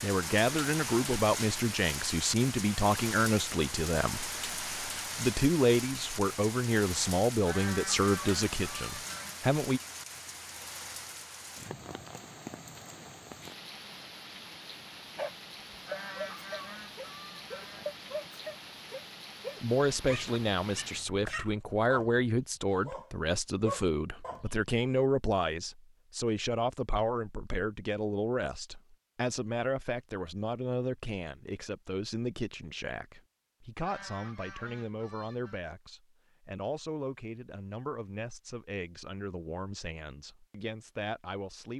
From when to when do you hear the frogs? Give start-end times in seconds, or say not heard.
not heard.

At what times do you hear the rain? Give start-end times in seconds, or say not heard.
0.0-21.1.